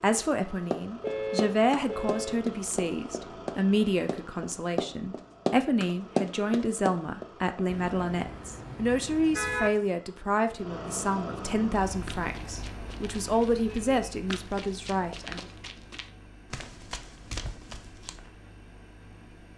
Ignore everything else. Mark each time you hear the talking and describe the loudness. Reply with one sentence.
The talking can be heard from 0.0 to 15.4 s, at a steady volume.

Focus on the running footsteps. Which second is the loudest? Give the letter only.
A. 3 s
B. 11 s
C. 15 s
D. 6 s
D.